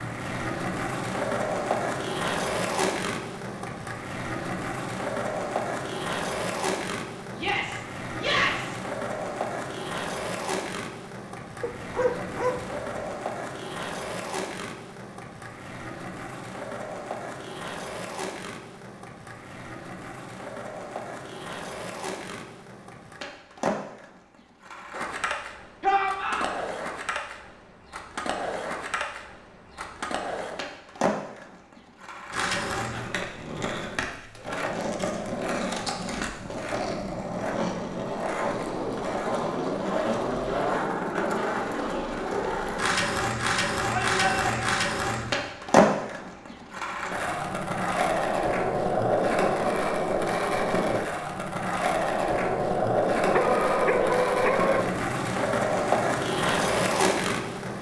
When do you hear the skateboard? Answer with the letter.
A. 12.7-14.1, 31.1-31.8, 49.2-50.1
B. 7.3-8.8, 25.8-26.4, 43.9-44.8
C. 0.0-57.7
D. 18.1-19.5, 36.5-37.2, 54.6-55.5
C.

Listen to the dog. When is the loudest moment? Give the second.
54 s.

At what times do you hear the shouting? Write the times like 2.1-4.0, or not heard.
7.3-8.8, 25.8-26.4, 43.9-44.8.